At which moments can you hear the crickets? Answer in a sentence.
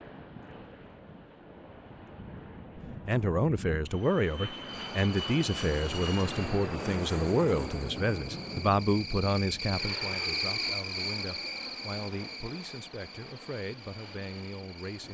The crickets can be heard from 4.6 to 15.0 s.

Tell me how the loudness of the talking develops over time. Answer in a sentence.
The volume of the talking goes down.